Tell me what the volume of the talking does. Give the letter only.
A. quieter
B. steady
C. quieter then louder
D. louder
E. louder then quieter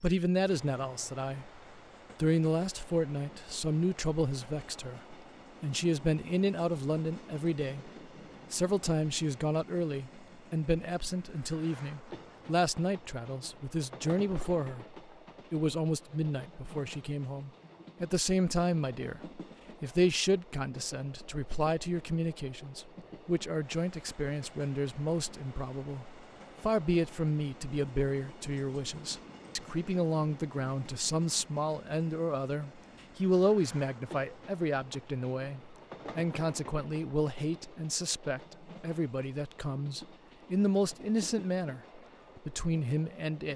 B.